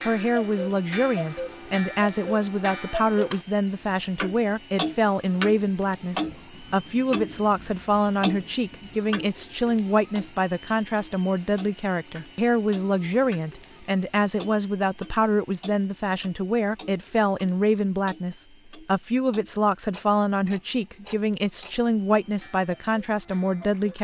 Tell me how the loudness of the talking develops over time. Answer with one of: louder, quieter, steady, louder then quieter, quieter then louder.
steady.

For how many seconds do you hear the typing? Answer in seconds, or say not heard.
not heard.